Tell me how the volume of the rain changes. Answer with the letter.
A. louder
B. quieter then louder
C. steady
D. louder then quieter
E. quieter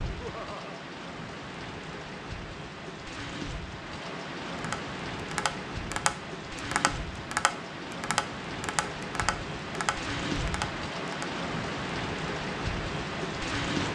A.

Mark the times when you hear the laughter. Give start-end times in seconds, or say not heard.
0.1-0.8.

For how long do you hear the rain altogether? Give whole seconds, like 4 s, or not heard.
14 s.